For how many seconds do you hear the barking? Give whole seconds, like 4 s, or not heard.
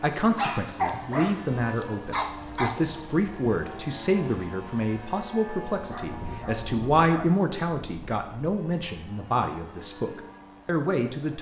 4 s.